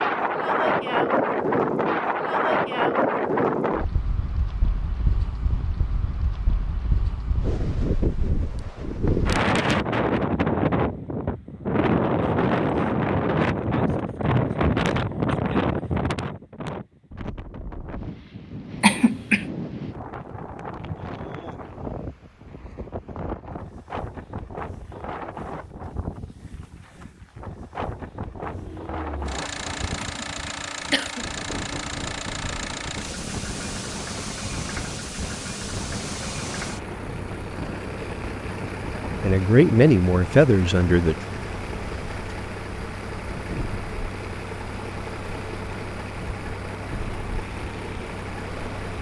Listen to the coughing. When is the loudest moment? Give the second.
19 s.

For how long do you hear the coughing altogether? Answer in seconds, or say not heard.
2 s.